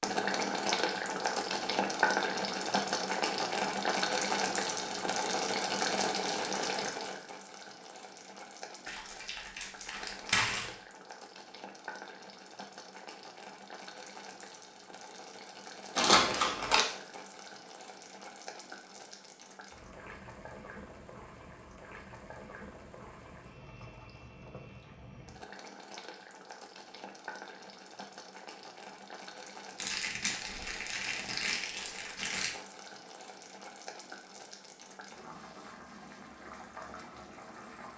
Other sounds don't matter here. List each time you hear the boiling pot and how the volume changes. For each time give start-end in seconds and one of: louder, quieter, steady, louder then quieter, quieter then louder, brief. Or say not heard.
0.0-37.9 quieter.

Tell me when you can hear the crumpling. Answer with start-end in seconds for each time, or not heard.
8.8-10.8, 15.9-16.9, 29.8-32.5.